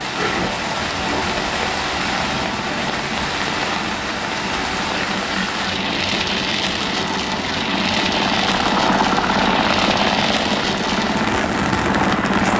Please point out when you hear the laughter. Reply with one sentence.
The laughter can't be heard in this clip.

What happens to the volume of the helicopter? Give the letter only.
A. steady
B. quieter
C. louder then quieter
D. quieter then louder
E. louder
E.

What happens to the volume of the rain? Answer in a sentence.
The loudness of the rain stays about the same.